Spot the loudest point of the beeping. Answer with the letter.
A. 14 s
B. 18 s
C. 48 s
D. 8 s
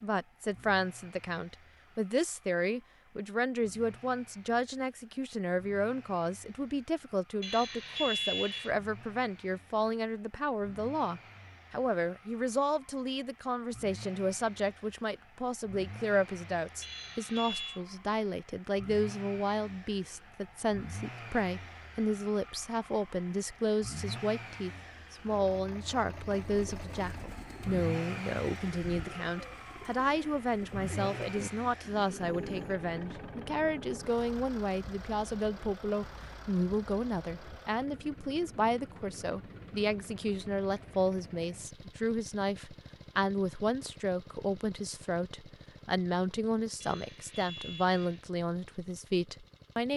D.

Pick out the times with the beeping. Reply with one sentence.
You can hear the beeping from 7.4 to 8.8 s, from 16.8 to 17.8 s and from 46.8 to 48.2 s.